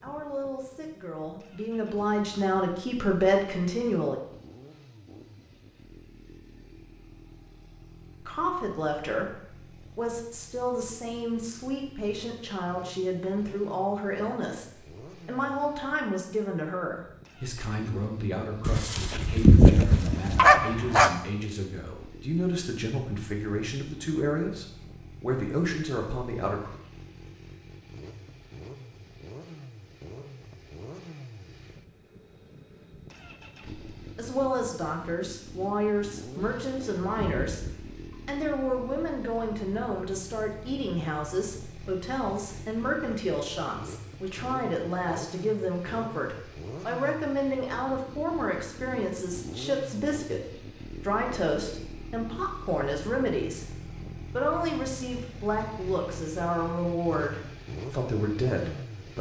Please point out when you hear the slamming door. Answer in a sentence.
The slamming door can't be heard in this clip.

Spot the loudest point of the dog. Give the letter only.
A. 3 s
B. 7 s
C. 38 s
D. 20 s
D.